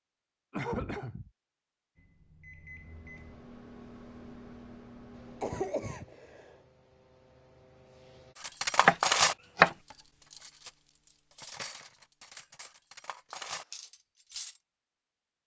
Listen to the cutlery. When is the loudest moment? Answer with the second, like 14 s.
9 s.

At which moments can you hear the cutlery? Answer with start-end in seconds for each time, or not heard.
8.3-10.7, 11.3-14.6.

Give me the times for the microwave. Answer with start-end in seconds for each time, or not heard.
1.9-5.8.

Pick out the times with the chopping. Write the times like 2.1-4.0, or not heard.
8.8-9.8.